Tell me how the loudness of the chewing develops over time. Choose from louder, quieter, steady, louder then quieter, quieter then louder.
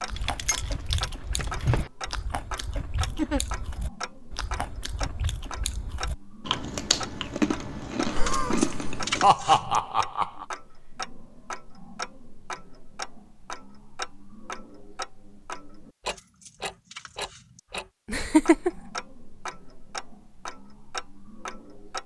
louder.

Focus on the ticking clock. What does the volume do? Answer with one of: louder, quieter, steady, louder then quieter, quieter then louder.
steady.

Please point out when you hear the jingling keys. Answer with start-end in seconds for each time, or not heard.
0.1-1.9, 8.2-9.8, 16.1-17.6.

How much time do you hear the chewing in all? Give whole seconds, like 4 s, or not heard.
9 s.